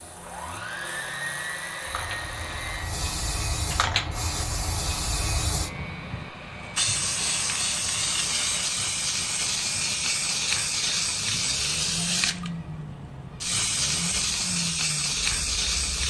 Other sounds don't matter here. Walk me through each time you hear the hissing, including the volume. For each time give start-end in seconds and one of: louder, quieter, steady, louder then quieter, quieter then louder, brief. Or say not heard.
0.0-16.0 louder.